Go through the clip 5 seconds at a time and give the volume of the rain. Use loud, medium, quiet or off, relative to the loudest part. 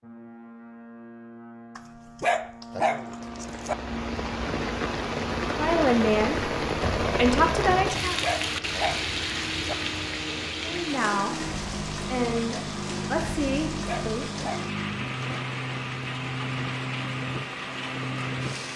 medium, loud, medium, medium.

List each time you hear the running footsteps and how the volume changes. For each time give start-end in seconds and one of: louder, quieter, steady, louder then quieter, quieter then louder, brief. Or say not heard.
not heard.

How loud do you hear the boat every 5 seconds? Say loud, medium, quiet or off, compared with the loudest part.
medium, medium, loud, loud.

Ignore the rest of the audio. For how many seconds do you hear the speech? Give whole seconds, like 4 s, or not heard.
6 s.